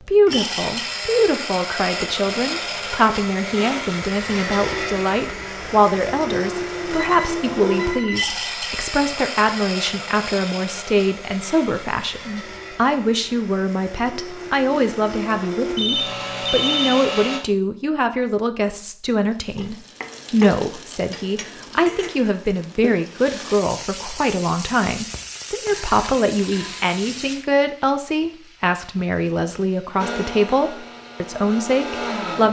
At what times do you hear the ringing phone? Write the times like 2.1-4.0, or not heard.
6.9-8.3, 15.8-17.0, 25.6-26.9.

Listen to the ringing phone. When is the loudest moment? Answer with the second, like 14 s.
17 s.